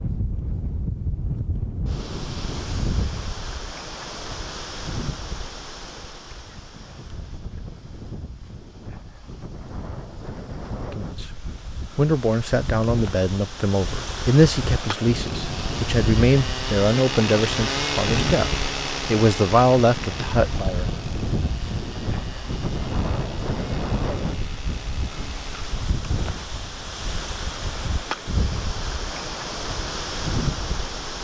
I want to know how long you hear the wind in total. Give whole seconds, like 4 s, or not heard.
31 s.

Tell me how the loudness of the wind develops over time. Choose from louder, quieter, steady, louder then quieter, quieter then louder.
quieter then louder.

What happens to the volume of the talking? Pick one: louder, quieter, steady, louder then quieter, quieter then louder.
steady.